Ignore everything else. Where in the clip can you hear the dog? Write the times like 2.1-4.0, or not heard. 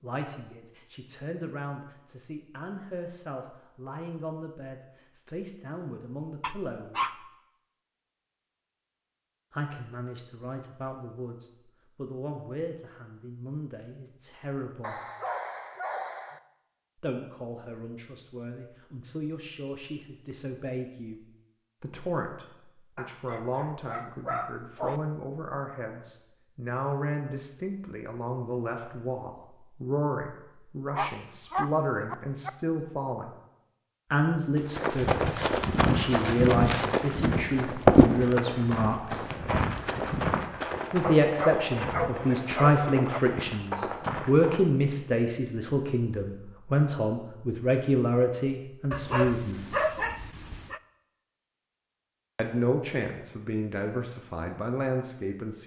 6.4-7.2, 14.8-16.4, 22.9-25.0, 30.9-32.5, 41.0-43.2, 48.9-50.8.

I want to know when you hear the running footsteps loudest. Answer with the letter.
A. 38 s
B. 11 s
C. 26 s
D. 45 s
A.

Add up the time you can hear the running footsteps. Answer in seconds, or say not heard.
10 s.